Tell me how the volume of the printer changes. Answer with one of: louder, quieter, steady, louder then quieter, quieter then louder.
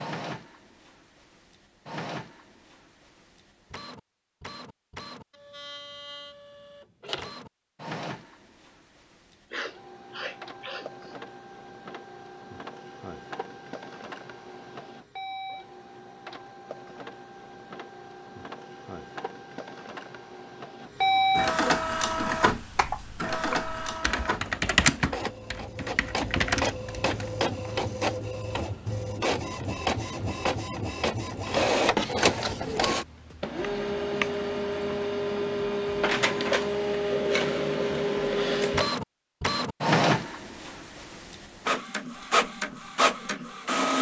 louder.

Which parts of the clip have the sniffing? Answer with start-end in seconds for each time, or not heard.
9.5-11.2.